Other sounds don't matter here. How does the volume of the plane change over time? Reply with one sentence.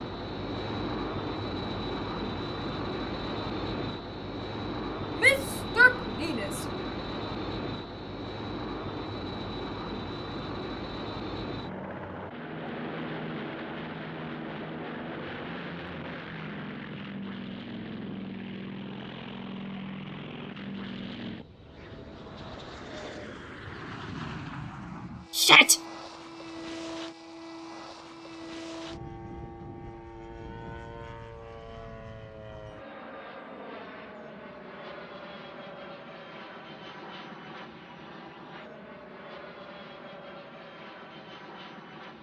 The volume of the plane goes down.